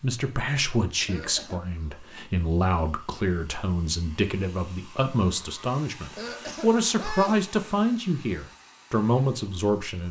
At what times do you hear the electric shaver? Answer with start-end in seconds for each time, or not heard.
not heard.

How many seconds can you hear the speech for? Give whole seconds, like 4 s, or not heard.
10 s.